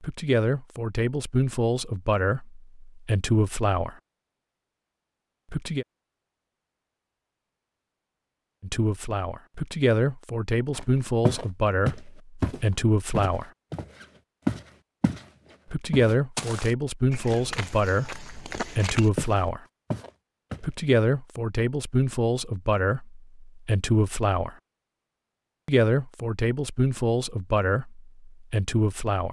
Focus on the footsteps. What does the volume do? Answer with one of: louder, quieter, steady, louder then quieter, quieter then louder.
quieter then louder.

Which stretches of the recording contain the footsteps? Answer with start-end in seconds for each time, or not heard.
10.8-15.2, 15.9-20.6.